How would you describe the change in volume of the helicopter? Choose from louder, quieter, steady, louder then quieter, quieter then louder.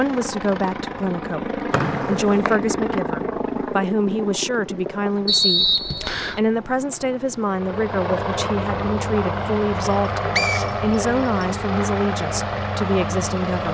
quieter then louder.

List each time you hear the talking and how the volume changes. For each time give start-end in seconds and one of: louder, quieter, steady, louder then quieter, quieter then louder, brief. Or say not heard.
0.0-13.6 steady.